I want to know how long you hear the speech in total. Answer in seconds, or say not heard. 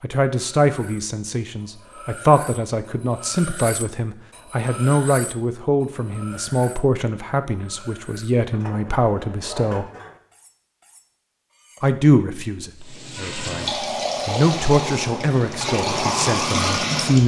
15 s.